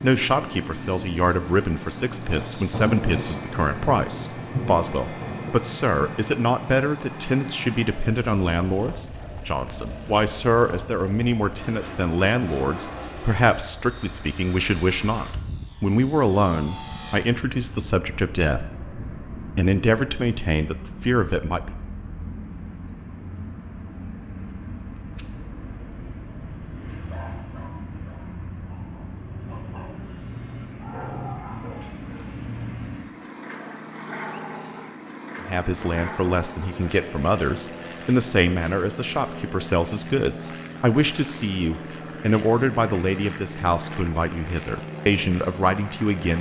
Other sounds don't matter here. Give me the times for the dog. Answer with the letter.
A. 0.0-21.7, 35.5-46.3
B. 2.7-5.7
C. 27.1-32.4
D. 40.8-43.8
C.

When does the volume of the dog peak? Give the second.
31 s.